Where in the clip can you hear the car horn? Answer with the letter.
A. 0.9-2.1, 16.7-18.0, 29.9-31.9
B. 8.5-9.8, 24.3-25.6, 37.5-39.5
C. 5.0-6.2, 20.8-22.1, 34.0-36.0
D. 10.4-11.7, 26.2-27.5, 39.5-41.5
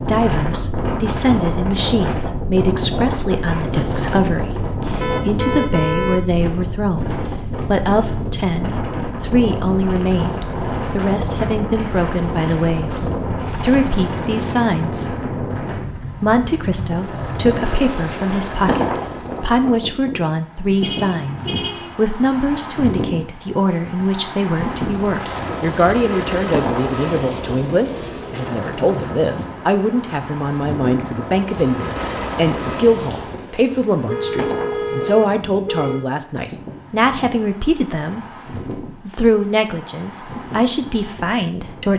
C.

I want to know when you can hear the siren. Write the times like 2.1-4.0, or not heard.
not heard.